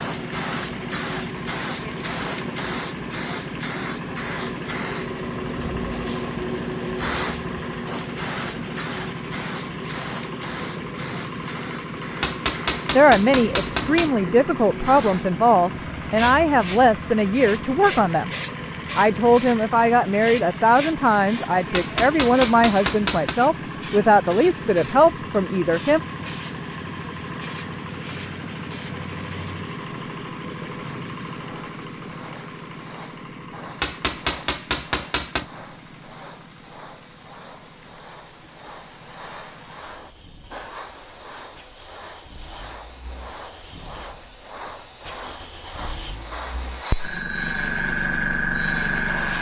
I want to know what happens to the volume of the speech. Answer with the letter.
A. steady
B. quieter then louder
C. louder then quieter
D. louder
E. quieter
A.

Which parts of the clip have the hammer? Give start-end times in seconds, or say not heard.
12.2-14.1, 21.7-23.4, 33.8-35.5.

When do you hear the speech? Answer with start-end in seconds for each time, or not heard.
12.9-18.3, 18.9-26.0.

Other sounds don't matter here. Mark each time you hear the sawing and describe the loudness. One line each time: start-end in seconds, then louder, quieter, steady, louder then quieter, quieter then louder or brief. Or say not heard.
not heard.